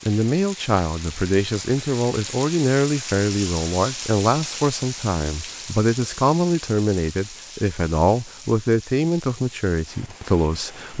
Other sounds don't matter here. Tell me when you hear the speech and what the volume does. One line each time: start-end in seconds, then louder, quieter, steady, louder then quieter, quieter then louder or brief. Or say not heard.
0.1-10.9 steady.